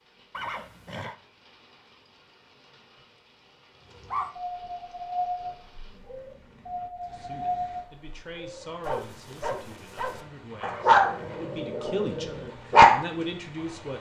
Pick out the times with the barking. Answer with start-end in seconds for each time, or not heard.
3.9-13.1.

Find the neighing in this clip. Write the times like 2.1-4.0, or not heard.
0.3-1.1, 10.6-11.4.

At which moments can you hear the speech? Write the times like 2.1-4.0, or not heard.
6.8-13.9.